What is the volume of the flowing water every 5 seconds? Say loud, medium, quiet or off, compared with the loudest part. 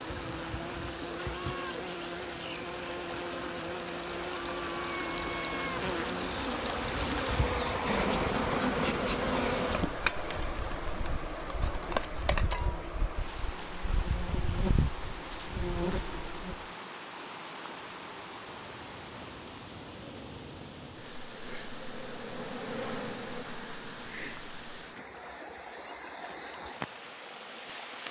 medium, loud, medium, medium, medium, medium.